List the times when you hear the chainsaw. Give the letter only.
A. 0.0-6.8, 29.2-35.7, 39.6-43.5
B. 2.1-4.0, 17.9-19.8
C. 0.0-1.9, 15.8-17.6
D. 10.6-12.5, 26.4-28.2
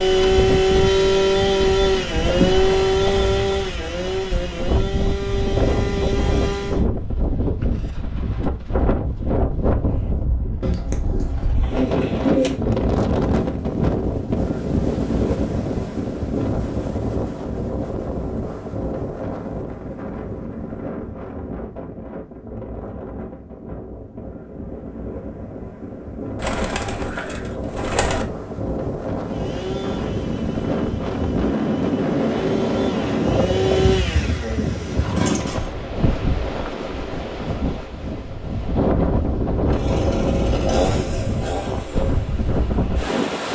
A.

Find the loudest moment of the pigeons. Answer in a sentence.
The volume of the pigeons peaks at 12 seconds.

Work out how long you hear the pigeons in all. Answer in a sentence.
You can hear the pigeons for 4 seconds altogether.